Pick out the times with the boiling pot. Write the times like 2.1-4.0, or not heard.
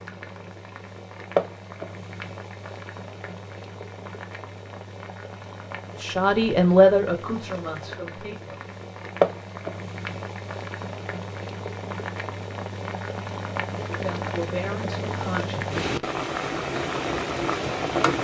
0.0-18.1.